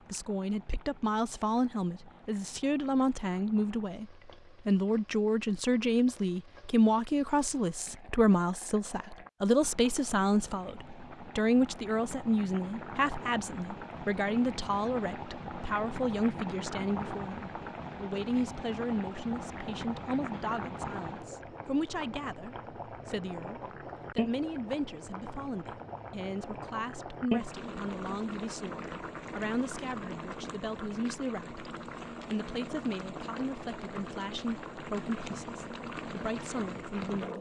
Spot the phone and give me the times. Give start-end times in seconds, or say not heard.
not heard.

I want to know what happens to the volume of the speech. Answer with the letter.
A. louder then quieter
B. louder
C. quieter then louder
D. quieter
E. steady
D.